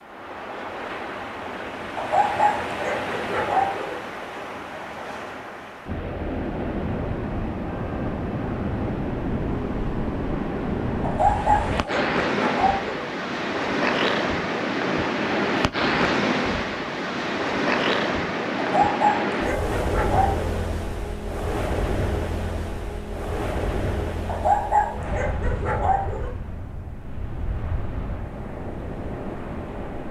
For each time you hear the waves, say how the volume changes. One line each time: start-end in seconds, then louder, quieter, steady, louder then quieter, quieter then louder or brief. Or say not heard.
0.0-30.0 louder then quieter.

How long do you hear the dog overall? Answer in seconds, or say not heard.
8 s.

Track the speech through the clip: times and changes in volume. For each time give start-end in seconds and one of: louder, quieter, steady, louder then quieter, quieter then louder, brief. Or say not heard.
not heard.